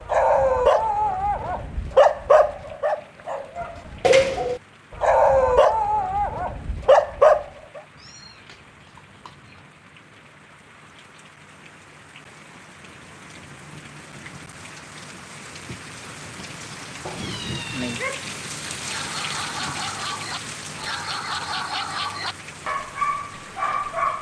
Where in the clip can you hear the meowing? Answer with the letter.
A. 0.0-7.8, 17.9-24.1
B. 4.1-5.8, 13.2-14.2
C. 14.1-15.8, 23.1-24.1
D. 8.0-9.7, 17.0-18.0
D.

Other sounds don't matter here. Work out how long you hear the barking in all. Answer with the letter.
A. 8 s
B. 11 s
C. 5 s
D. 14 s
D.